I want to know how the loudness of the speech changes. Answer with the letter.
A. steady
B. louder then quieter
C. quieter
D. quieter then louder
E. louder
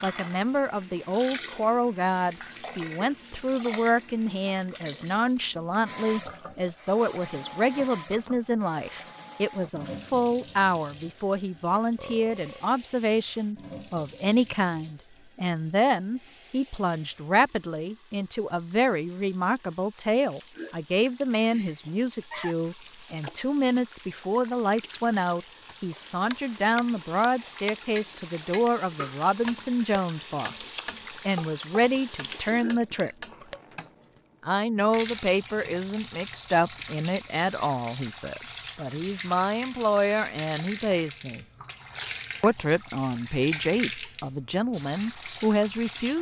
A.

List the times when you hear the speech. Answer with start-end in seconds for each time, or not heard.
0.0-33.1, 34.4-41.5, 42.4-46.1.